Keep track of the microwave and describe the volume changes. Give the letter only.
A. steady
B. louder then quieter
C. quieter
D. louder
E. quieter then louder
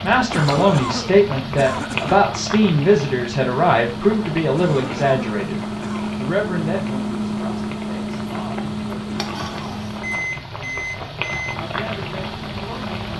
B.